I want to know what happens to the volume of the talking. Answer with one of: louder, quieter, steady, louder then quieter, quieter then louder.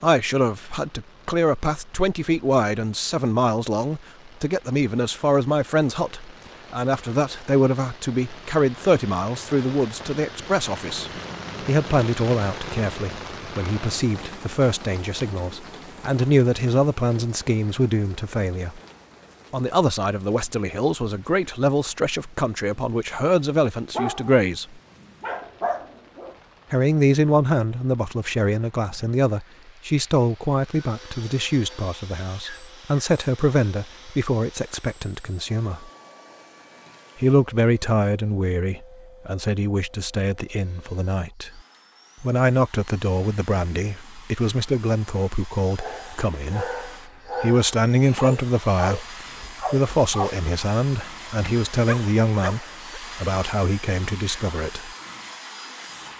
steady.